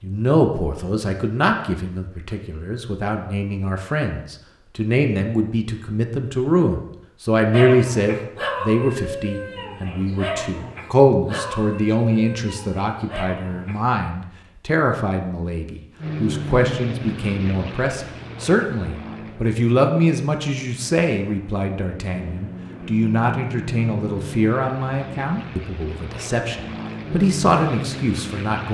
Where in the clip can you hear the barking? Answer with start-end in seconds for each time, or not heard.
7.5-13.8.